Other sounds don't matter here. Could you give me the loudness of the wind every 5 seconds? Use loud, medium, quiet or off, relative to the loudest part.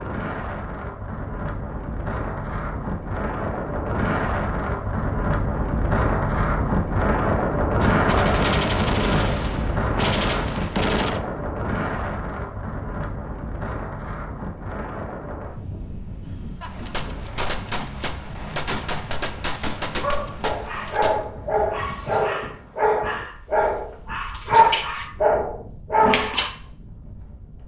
medium, loud, medium, quiet, quiet, quiet.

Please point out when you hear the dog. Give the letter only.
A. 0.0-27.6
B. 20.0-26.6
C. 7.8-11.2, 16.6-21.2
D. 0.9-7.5
B.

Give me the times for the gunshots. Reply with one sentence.
You can hear the gunshots from 7.8 to 11.2 s and from 16.6 to 21.2 s.